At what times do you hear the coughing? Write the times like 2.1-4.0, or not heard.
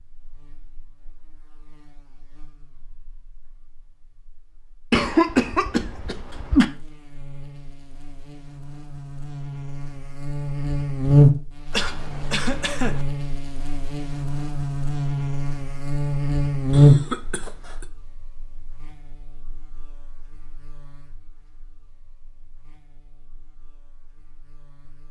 4.9-6.7, 11.7-13.1, 16.7-17.9.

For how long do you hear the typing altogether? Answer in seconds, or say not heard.
not heard.